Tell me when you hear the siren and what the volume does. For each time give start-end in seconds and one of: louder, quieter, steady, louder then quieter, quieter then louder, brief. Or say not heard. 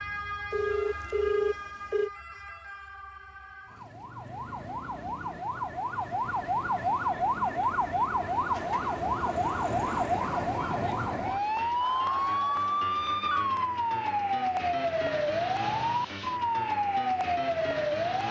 0.0-18.2 louder.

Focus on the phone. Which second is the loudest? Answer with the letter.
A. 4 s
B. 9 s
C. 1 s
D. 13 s
C.